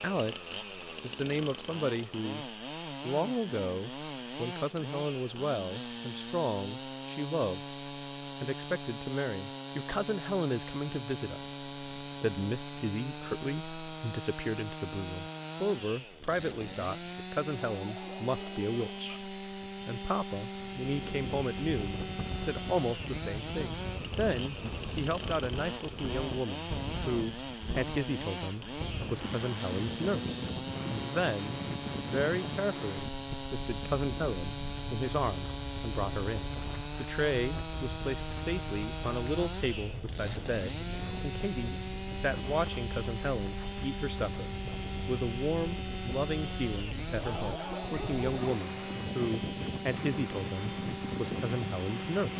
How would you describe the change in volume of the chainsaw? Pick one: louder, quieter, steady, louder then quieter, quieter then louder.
steady.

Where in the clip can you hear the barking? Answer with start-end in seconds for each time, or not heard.
17.6-19.3, 47.1-48.5.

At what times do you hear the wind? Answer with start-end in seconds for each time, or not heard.
20.9-52.3.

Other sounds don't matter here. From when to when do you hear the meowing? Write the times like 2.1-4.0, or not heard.
not heard.